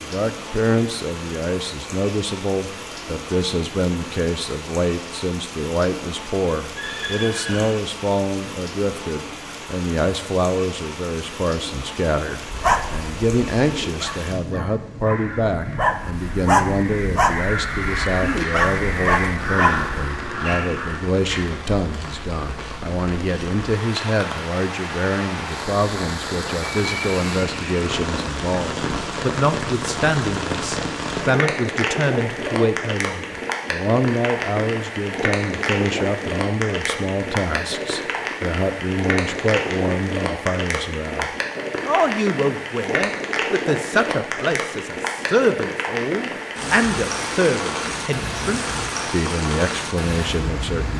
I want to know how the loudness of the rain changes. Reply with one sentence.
The loudness of the rain goes up.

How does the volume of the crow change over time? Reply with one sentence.
The loudness of the crow goes up.